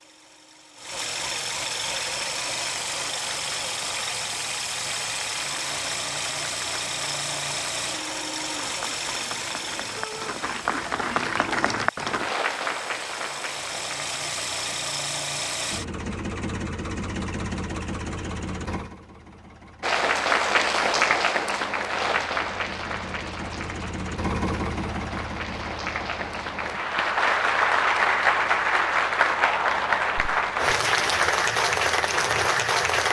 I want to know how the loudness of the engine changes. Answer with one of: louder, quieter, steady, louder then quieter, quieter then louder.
quieter.